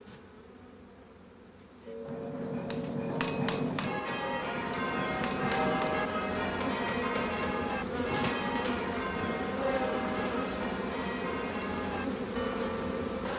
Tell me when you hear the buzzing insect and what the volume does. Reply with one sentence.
You can hear the buzzing insect from 0.0 to 13.3 s, getting louder.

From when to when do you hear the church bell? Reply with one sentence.
You can hear the church bell from 1.9 to 13.1 s.